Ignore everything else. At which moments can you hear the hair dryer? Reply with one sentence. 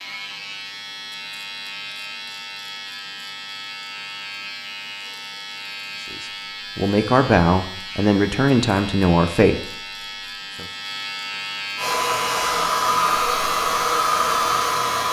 The hair dryer can be heard from 11.8 to 15.0 s.